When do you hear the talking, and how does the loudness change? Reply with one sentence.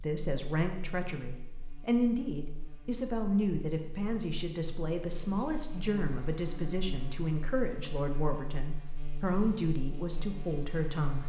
You can hear the talking from 0.0 to 11.2 s, at a steady volume.